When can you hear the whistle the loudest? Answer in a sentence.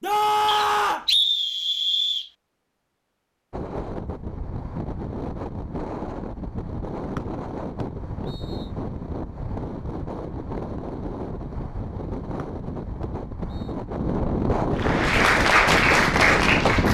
The volume of the whistle peaks at 1 second.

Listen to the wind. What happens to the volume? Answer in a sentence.
The volume of the wind goes up.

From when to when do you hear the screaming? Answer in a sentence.
You can hear the screaming from 0.0 to 1.1 s.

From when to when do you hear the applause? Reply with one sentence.
The applause can be heard from 14.8 to 16.8 s.